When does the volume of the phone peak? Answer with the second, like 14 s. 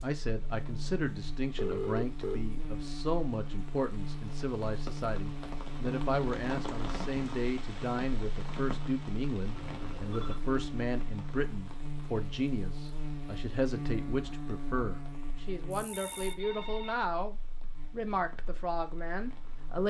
2 s.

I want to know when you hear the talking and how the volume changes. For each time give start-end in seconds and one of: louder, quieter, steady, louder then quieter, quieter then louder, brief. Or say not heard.
0.0-19.8 steady.